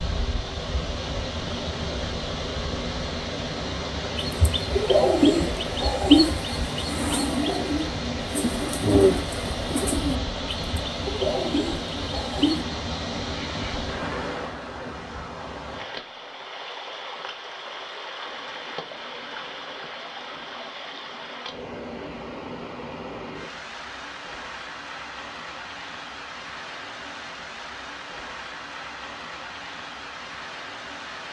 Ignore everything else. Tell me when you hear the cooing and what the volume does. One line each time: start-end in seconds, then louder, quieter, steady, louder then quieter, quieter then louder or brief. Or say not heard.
4.2-12.6 quieter.